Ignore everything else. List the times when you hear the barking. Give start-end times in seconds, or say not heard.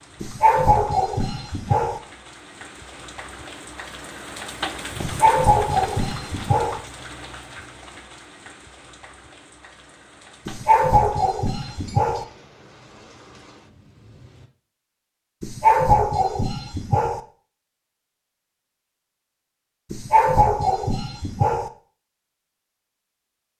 0.2-2.0, 5.0-6.8, 10.4-12.2, 15.4-17.2, 19.9-21.7.